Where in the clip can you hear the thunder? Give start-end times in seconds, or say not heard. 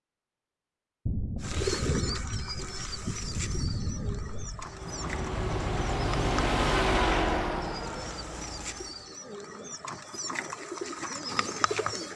1.1-4.7.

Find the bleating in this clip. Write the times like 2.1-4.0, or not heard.
not heard.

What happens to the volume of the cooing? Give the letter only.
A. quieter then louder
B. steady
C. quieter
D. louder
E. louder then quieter
A.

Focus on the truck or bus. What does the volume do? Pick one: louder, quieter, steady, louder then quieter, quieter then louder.
louder then quieter.